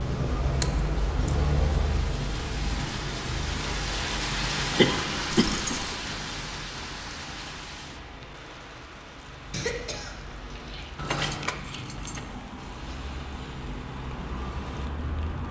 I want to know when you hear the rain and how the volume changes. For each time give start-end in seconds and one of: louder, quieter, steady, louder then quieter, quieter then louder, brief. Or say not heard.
0.0-15.4 louder then quieter.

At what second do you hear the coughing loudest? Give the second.
5 s.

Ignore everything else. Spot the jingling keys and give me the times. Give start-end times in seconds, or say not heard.
0.6-1.4, 5.3-5.9, 10.9-12.2.